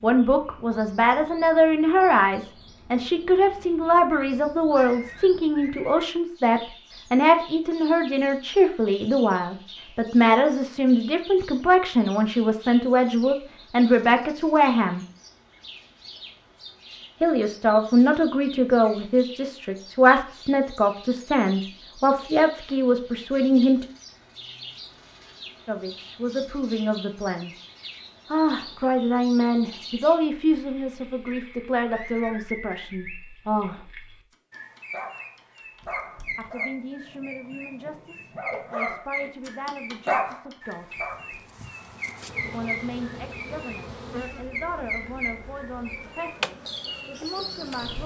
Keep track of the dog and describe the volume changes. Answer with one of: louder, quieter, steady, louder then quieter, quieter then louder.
quieter then louder.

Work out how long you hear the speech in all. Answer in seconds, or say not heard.
39 s.